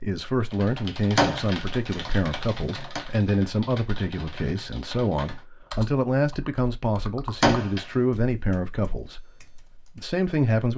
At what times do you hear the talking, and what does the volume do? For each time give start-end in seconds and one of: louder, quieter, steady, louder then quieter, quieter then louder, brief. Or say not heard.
0.0-10.7 steady.